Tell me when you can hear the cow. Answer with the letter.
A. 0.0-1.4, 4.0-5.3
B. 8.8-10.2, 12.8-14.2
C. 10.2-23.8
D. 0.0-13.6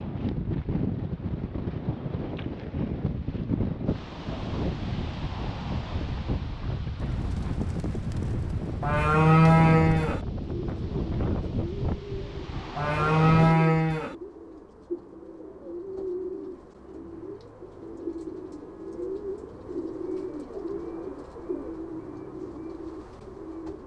B.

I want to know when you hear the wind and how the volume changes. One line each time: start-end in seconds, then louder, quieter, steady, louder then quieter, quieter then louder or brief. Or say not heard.
0.0-13.6 steady.